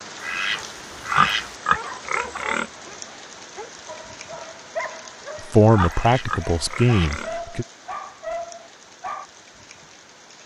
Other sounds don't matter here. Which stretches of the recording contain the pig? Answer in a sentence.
The pig can be heard from 1.1 to 2.6 s and from 5.7 to 7.3 s.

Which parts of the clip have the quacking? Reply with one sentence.
You can hear the quacking from 0.2 to 1.6 s and from 5.8 to 7.2 s.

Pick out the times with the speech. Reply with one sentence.
The speech can be heard from 5.5 to 7.7 s.